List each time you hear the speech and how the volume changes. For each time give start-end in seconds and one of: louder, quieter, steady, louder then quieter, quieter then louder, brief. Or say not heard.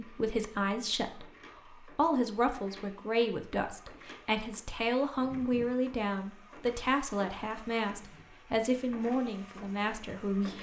0.0-10.5 steady.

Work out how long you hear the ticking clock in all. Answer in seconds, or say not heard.
not heard.